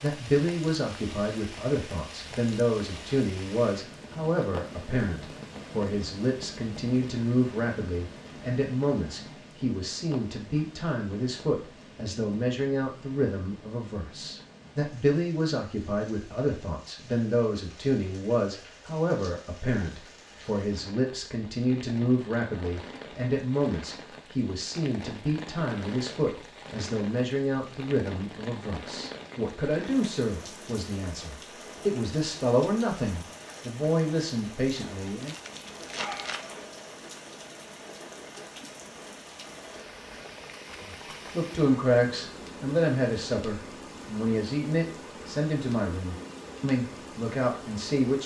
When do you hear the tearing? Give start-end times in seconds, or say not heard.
35.2-36.5.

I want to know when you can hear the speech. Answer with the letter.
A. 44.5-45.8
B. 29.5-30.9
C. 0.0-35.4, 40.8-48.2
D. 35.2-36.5
C.